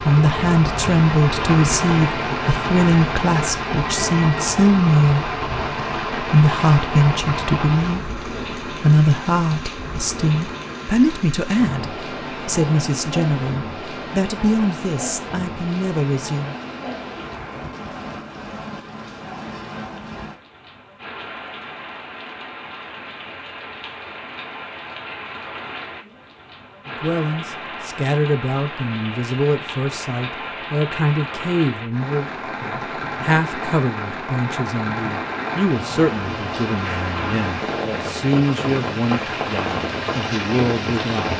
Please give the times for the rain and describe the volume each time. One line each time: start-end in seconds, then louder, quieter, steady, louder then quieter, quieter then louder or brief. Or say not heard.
0.0-41.3 quieter then louder.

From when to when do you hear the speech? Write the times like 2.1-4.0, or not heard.
0.1-5.3, 6.2-16.6, 26.9-41.3.